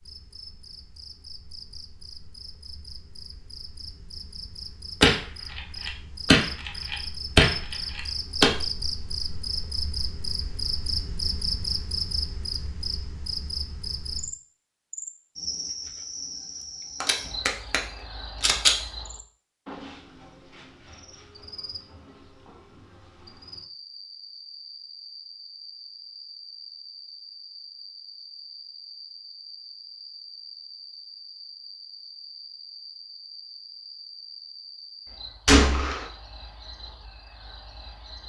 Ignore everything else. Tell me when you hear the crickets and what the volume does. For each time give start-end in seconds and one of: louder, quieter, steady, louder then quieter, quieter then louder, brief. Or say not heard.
0.0-38.2 louder then quieter.